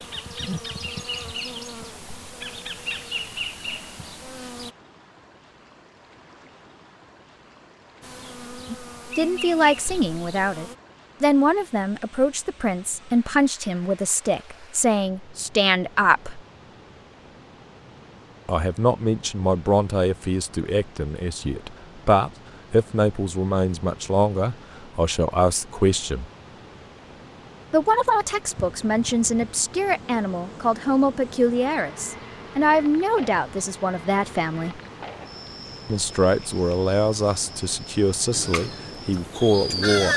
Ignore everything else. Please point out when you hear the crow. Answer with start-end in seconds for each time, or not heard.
38.3-40.1.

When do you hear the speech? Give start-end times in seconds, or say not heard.
8.7-16.4, 18.4-26.2, 27.7-34.8, 35.9-40.1.